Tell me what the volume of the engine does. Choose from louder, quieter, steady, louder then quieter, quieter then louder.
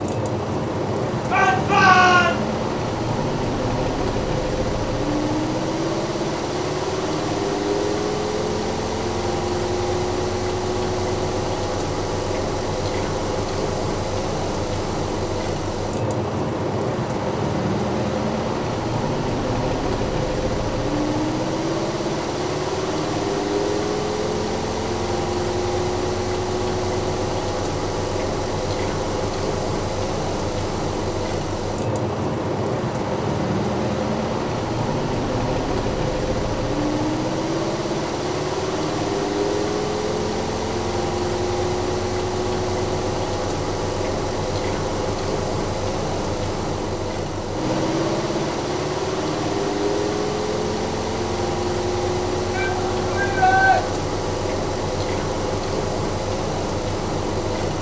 steady.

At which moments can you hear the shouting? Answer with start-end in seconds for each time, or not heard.
1.3-2.3, 52.5-53.8.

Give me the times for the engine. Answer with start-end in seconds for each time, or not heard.
0.0-57.7.